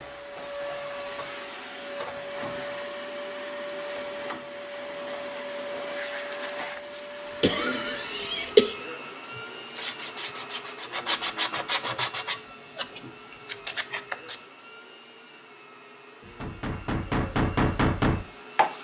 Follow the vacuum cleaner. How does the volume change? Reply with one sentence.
The loudness of the vacuum cleaner goes down.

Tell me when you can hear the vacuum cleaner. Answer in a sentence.
The vacuum cleaner can be heard from 0.0 to 18.7 s.